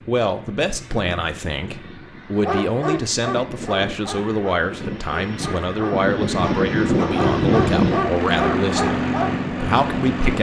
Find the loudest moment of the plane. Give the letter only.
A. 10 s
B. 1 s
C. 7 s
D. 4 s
C.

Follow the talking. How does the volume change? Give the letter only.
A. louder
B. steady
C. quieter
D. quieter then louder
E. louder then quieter
B.